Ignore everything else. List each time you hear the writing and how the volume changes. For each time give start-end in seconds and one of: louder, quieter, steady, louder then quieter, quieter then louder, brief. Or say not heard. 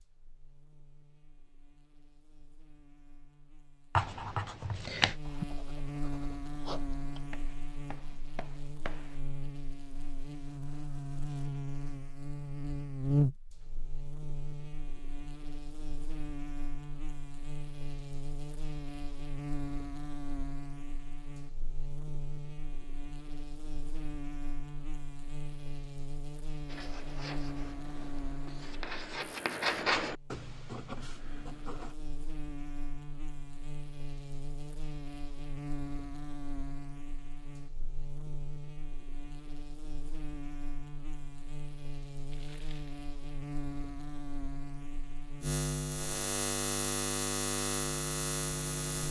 4.0-9.2 quieter
26.6-31.9 louder then quieter.